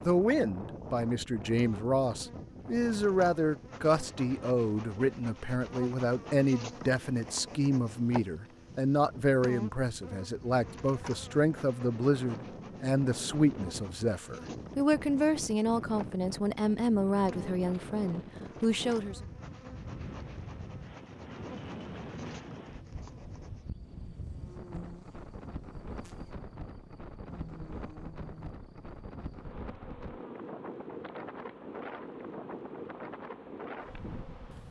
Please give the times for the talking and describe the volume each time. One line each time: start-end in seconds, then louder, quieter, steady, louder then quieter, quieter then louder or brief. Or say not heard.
0.0-19.2 steady.